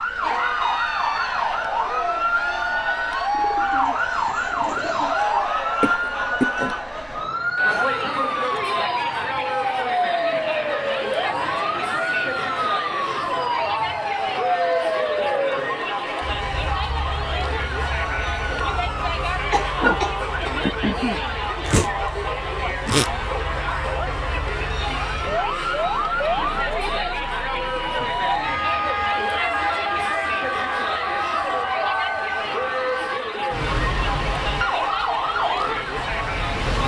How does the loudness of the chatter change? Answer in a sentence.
The volume of the chatter stays about the same.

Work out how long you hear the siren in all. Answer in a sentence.
The siren can be heard for 37 seconds in total.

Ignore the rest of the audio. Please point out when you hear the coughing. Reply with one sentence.
You can hear the coughing from 5.8 to 6.8 s and from 19.5 to 20.6 s.